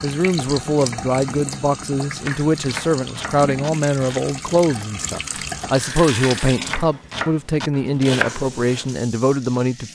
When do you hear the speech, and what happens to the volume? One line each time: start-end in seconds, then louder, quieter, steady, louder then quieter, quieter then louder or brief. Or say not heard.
0.0-9.9 steady.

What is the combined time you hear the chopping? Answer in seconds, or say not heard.
7 s.